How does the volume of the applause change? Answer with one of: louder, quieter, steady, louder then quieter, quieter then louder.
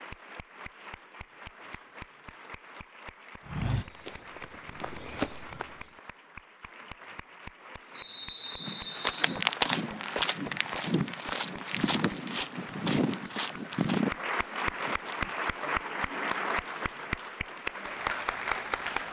louder.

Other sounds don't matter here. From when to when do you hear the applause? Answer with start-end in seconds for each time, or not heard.
0.0-19.0.